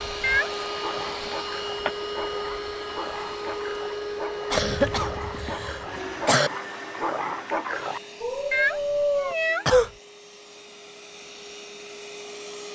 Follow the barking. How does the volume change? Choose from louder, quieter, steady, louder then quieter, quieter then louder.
louder.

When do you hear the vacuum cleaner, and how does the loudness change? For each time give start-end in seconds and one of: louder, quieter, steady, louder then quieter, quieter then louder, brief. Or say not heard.
0.0-12.7 quieter.